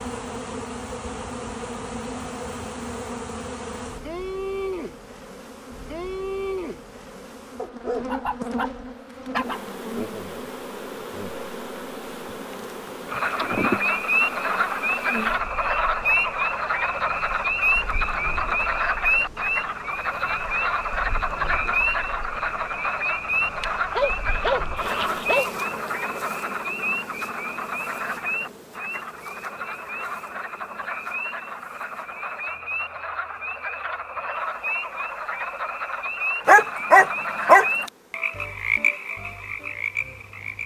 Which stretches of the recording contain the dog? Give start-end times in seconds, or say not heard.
7.5-9.7, 23.6-25.5, 36.5-37.9.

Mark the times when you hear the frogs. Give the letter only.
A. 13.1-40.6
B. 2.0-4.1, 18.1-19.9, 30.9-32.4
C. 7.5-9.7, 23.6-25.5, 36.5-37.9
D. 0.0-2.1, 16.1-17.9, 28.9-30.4
A.